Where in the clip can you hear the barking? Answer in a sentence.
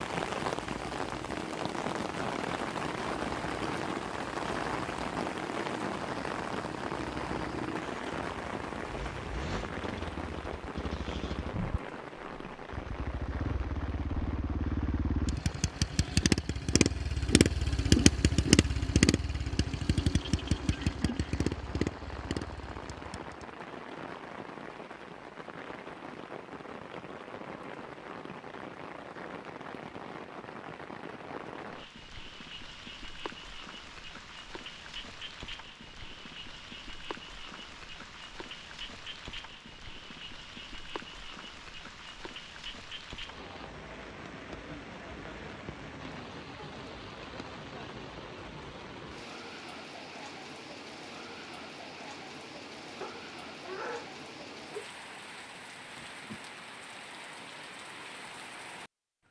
The barking can be heard from 53.0 to 54.9 s.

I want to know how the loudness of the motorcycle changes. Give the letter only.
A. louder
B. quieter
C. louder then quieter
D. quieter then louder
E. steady
A.